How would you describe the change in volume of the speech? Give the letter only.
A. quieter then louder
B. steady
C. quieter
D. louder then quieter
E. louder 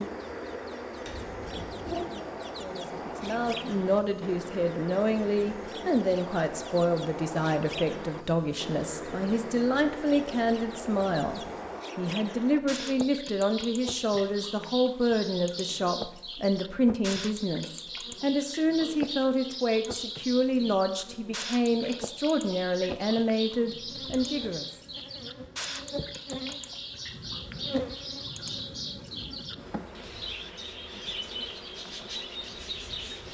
B.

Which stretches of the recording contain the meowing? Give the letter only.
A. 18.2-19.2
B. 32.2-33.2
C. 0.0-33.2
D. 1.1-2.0
D.